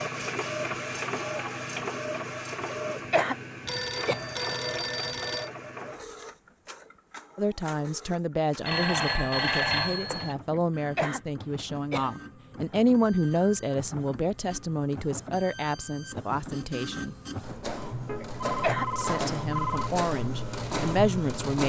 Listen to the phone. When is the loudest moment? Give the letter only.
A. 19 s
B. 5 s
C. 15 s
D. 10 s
D.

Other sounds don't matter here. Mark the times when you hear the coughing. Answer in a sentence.
The coughing can be heard from 2.7 to 4.2 s, from 10.5 to 12.2 s and from 18.2 to 18.9 s.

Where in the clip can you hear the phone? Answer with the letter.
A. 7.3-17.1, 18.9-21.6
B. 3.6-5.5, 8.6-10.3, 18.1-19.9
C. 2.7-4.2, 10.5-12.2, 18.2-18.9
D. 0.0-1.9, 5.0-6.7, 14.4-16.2
B.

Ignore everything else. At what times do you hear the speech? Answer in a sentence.
The speech can be heard from 7.3 to 17.1 s and from 18.9 to 21.6 s.